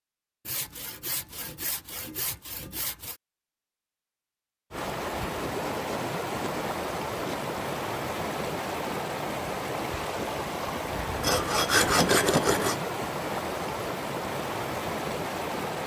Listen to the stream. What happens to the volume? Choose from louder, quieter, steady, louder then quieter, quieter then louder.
steady.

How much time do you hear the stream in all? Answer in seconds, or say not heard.
11 s.